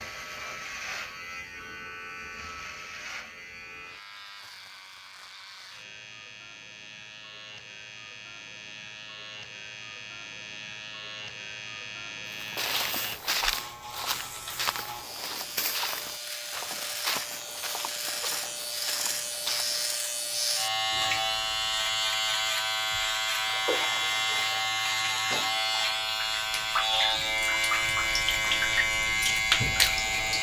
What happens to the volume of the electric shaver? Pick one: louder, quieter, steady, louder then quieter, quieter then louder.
louder.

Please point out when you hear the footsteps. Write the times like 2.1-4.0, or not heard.
12.4-20.1.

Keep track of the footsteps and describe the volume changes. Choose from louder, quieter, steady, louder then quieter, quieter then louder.
quieter.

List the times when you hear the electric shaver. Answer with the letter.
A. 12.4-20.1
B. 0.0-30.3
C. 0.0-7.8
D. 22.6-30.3
B.